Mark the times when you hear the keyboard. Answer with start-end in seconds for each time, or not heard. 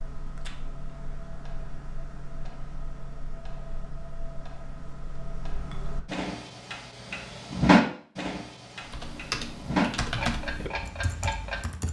8.8-11.8.